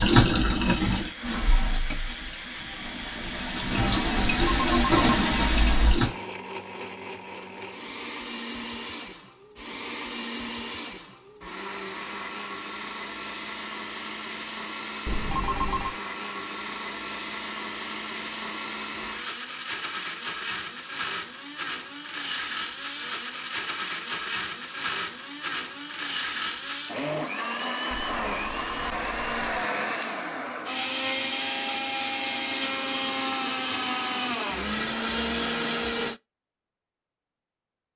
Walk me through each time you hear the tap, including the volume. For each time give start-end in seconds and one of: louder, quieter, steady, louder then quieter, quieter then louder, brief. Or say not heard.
0.0-6.2 quieter then louder.